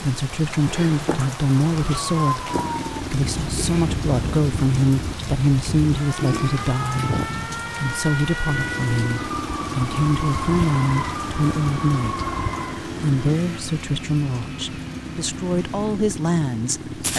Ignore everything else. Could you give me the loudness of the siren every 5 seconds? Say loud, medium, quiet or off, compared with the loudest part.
loud, loud, loud, off.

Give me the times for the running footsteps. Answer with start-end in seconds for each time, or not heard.
not heard.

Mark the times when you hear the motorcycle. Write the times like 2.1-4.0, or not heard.
2.5-5.0, 8.4-17.1.